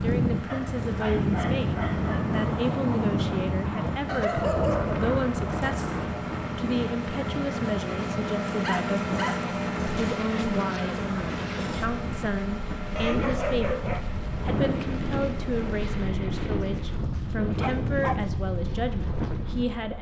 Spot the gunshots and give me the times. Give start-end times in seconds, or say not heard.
9.8-11.9.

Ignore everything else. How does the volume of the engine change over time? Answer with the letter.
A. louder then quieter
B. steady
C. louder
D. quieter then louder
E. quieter
A.